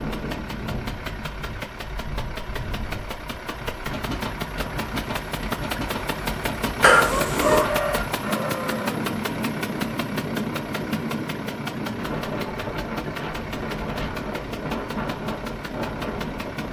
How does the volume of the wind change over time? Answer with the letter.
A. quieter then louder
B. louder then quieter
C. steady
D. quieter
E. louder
E.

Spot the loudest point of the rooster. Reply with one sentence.
The volume of the rooster peaks at 8 seconds.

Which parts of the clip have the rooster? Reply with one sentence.
The rooster can be heard from 7.0 to 9.1 s.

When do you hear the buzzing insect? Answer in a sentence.
The buzzing insect can't be heard in this clip.